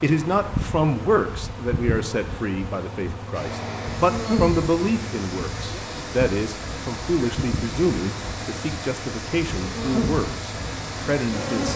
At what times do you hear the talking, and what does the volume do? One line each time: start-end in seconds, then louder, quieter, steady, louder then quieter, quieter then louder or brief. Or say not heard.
0.0-11.7 steady.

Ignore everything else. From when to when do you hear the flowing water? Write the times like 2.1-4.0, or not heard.
3.3-11.7.